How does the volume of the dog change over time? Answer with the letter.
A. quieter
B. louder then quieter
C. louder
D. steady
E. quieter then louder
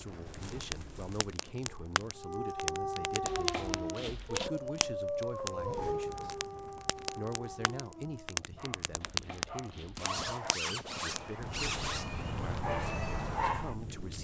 E.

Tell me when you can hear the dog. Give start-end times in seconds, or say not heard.
2.1-13.8.